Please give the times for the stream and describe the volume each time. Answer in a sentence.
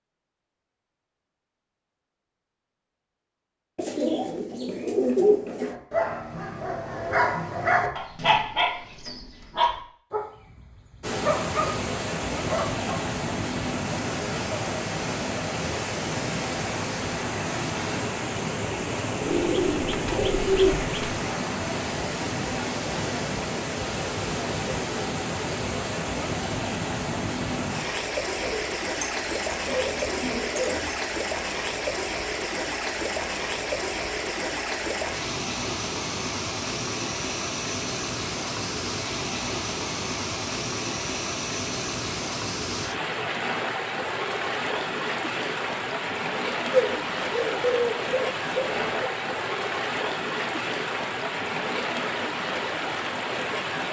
The stream can be heard from 11.0 to 53.8 s, at a steady volume.